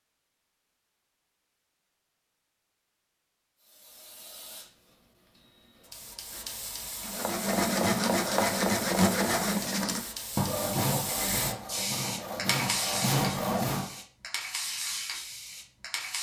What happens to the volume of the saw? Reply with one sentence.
The loudness of the saw goes down, then up.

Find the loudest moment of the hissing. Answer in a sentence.
The loudest moment of the hissing is at 13 seconds.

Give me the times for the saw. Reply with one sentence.
You can hear the saw from 7.0 to 14.0 s.